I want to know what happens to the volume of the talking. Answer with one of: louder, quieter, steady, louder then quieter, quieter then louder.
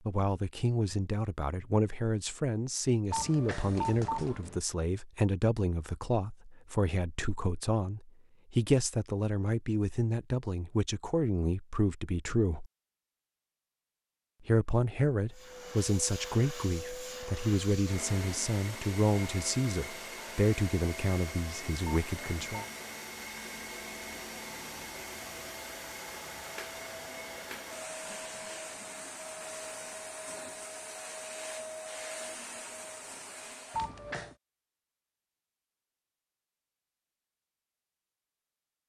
steady.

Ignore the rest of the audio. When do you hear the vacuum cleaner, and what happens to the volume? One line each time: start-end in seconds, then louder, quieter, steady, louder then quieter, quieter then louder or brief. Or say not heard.
15.3-33.9 steady.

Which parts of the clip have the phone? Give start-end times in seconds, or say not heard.
3.1-4.6, 22.1-22.6, 33.7-34.4.